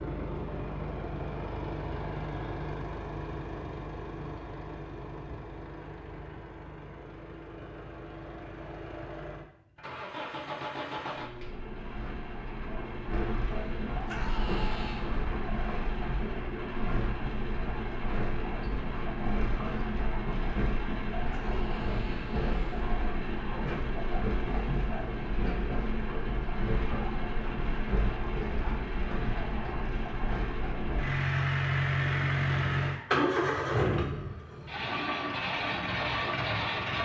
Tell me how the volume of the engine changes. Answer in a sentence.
The loudness of the engine goes up.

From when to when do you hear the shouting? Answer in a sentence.
The shouting can be heard from 14.1 to 15.2 s and from 21.3 to 22.9 s.